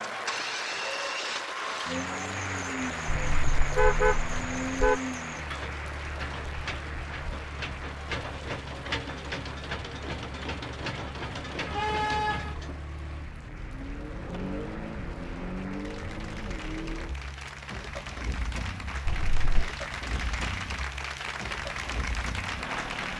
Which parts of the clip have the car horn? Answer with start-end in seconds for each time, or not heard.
3.0-5.0, 11.7-12.6, 19.1-19.7.